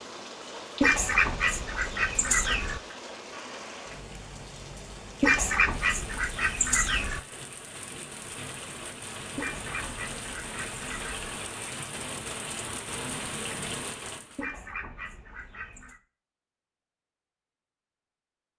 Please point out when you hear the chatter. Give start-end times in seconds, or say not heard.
not heard.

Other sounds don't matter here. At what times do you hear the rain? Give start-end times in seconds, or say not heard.
0.0-14.4.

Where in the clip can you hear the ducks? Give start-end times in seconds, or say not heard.
0.8-2.8, 5.2-7.2, 9.3-11.3, 14.3-16.0.